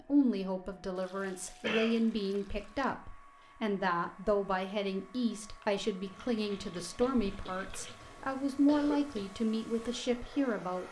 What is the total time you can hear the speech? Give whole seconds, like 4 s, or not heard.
11 s.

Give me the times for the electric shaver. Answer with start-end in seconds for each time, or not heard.
not heard.